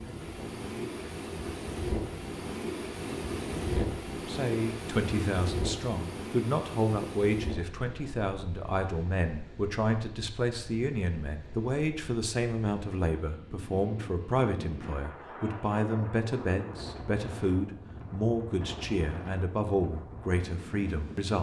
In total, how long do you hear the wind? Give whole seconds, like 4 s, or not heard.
21 s.